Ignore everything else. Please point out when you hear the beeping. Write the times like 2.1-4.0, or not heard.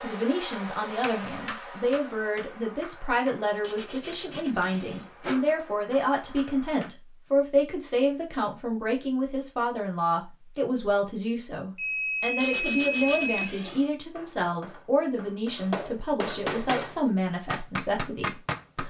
4.1-4.8, 11.8-13.5.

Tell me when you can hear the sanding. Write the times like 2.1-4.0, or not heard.
3.6-5.5, 12.4-13.8.